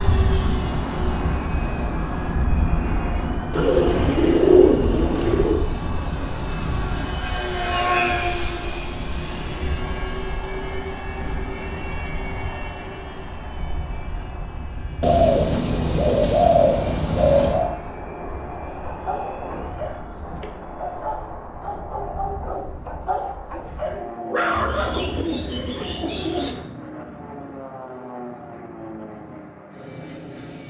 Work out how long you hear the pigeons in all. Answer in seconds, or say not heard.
7 s.